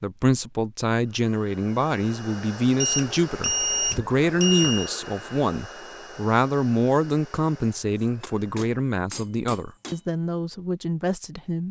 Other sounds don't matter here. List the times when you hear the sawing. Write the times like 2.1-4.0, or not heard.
not heard.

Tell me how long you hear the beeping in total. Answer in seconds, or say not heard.
2 s.